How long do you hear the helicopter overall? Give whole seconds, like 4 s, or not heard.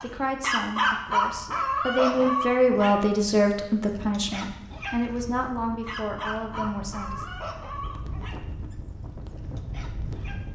not heard.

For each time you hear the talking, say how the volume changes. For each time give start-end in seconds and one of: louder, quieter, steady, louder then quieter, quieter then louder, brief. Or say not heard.
0.0-7.2 louder then quieter.